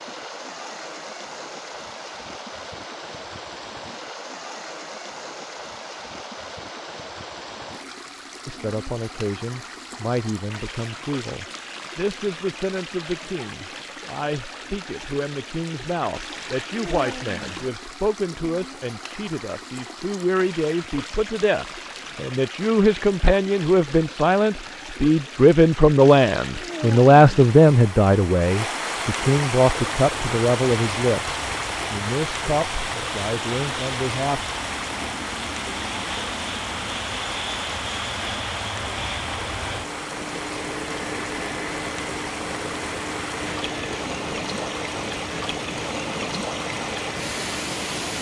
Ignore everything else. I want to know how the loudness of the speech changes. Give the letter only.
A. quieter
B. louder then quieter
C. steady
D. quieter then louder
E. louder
B.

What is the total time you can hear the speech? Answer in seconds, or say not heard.
26 s.